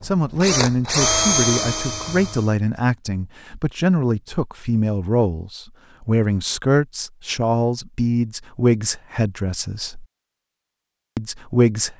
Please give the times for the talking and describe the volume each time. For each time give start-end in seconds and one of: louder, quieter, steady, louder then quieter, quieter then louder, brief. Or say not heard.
0.0-10.1 steady
11.2-11.9 brief.